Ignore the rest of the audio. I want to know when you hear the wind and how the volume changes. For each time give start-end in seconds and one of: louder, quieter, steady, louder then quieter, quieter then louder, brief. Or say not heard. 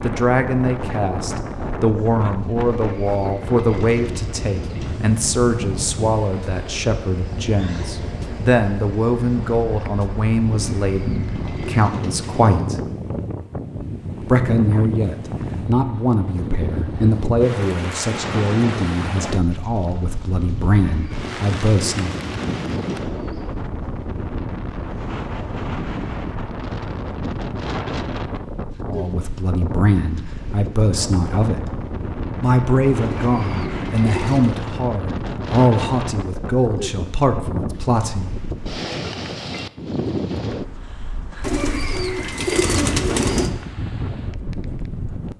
0.0-45.3 steady.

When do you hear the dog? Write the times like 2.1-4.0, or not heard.
not heard.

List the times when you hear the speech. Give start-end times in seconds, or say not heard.
0.0-12.8, 14.2-22.1, 28.9-31.7, 32.4-38.4.